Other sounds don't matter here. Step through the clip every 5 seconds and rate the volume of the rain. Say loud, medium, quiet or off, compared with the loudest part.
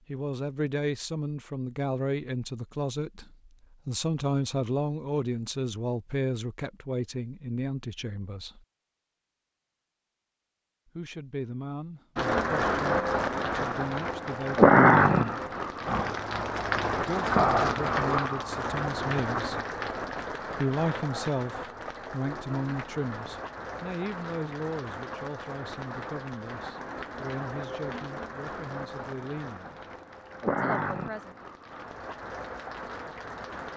off, off, loud, medium, quiet, quiet, quiet.